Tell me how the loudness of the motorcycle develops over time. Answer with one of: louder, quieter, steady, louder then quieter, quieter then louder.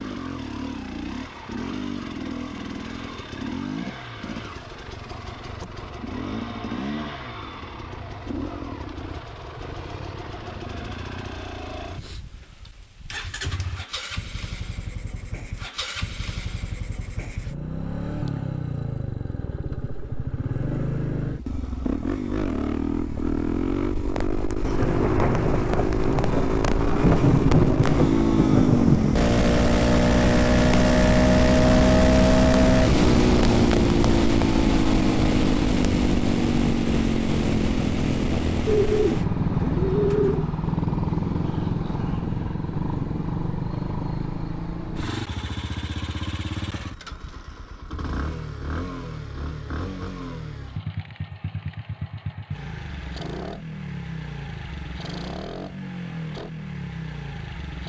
louder then quieter.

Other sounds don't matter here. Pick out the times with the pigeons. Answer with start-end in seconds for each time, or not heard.
38.6-40.5.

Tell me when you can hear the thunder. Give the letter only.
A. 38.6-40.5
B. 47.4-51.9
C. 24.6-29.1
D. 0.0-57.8
C.